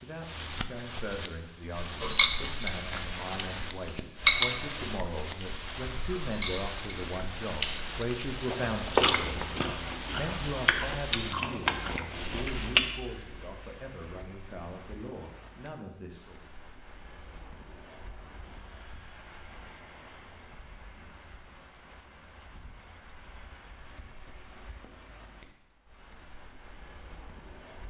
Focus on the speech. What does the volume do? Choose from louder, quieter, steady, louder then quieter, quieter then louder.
louder then quieter.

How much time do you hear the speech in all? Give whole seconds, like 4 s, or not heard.
16 s.